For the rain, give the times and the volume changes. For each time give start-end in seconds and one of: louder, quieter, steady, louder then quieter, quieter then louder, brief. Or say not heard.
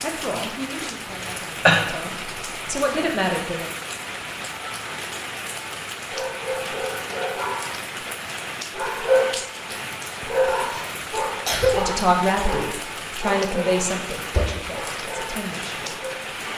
0.0-16.5 steady.